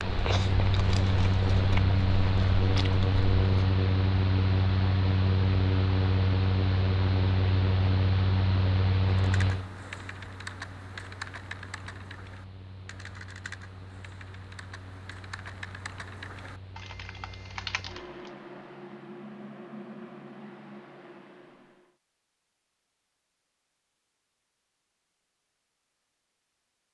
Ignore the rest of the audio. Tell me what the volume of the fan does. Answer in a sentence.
The loudness of the fan goes down, then up.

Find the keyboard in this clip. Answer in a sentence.
The keyboard can be heard from 9.1 to 18.3 s.